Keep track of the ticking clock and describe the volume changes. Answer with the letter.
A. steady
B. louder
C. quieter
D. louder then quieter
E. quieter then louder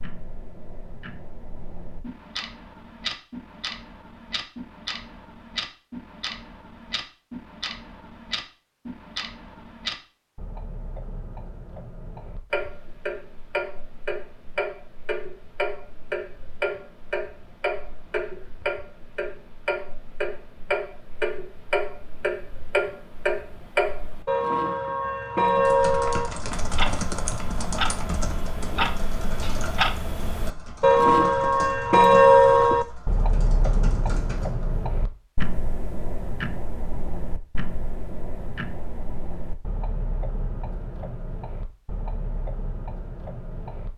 D.